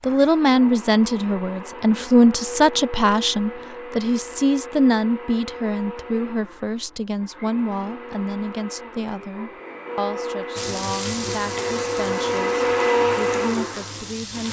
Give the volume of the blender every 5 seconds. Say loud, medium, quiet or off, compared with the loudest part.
medium, quiet, loud.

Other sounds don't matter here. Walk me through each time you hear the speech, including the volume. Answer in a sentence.
You can hear the speech from 0.0 to 14.4 s, getting quieter.